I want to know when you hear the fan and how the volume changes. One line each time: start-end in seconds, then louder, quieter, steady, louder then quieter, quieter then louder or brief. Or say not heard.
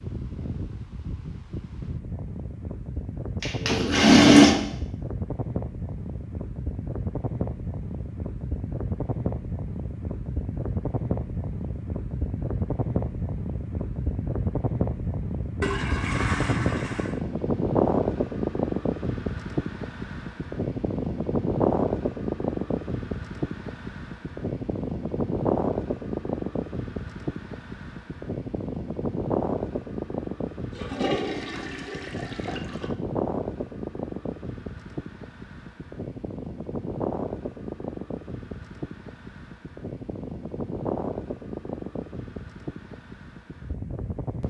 0.0-44.4 louder then quieter.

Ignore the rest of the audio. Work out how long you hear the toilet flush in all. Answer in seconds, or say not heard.
5 s.